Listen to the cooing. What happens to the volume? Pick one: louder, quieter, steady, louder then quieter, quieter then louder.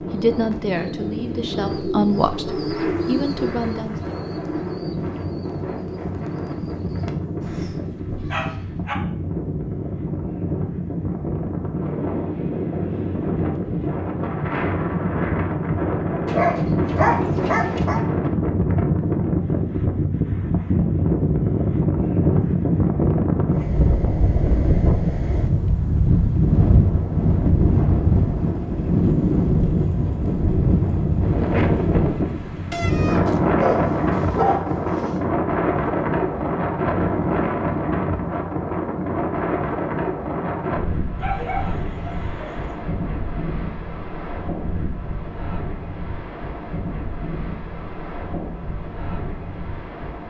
louder then quieter.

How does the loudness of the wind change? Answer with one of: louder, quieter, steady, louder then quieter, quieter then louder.
louder then quieter.